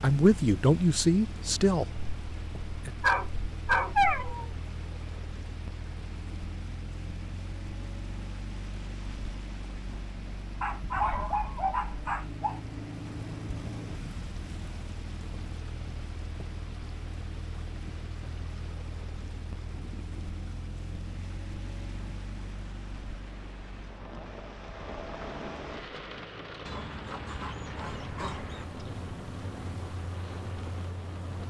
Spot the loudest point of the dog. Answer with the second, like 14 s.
4 s.